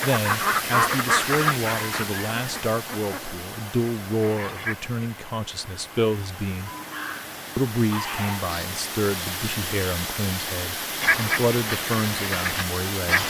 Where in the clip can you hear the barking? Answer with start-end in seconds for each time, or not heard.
6.7-8.7.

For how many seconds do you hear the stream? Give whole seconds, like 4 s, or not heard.
13 s.